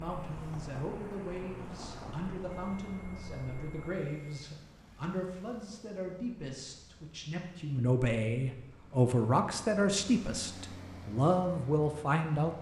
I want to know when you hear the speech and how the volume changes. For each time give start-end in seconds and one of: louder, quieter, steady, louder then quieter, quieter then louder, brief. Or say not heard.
0.0-12.5 louder.